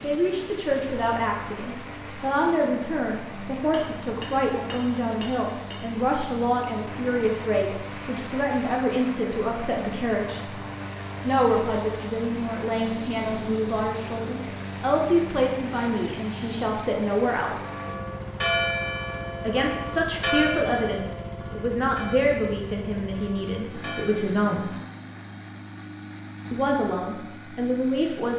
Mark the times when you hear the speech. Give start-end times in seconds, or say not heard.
0.0-10.5, 11.2-17.6, 19.4-24.6, 26.5-28.3.